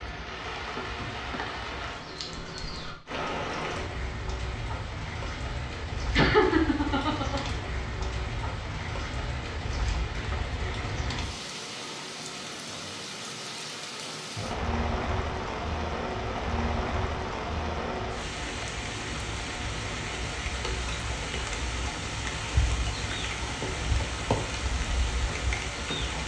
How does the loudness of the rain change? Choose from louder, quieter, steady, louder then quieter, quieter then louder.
steady.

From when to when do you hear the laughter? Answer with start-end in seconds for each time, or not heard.
6.2-7.4.